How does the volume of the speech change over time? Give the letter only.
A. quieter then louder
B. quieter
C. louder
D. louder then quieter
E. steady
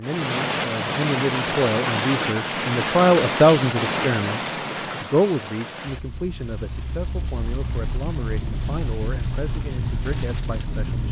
D.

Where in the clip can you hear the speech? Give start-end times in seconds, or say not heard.
0.0-11.0.